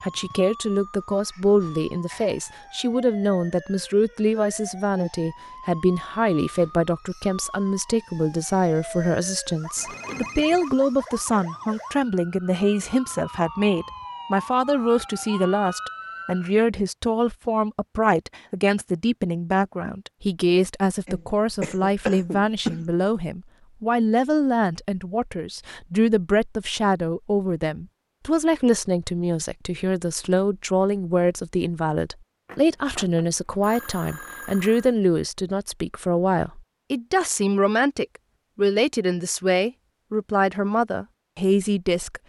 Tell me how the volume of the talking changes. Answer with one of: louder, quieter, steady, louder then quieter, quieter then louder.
steady.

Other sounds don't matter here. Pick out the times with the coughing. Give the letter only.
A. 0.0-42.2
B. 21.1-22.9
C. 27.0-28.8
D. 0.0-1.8
B.